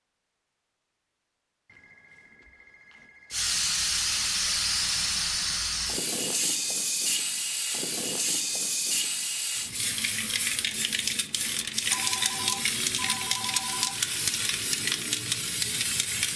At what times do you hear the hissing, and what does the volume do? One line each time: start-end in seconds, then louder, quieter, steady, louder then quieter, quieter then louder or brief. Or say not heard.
3.3-16.3 steady.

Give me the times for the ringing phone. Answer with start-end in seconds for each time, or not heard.
1.6-3.5, 11.9-13.9.